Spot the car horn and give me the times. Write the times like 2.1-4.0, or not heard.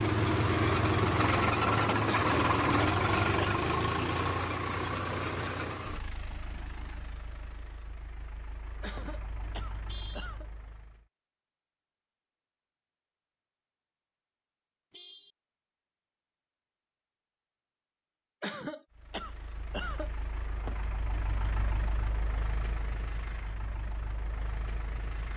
9.8-10.3, 14.9-15.3.